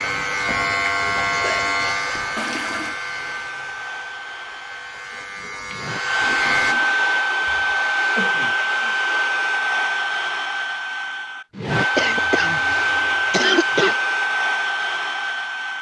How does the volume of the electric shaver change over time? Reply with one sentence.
The loudness of the electric shaver goes down, then up.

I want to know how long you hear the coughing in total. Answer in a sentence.
The coughing can be heard for 5 seconds in total.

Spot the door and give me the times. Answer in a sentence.
You can't hear the door here.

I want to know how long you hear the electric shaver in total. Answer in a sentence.
The electric shaver can be heard for 7 seconds in total.